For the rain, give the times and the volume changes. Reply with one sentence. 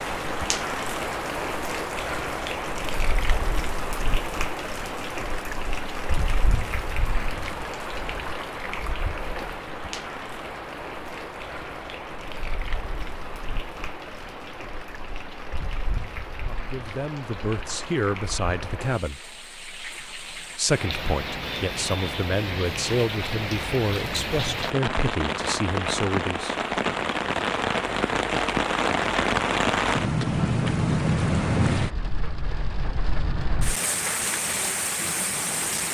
You can hear the rain from 0.0 to 35.8 s, getting quieter then louder.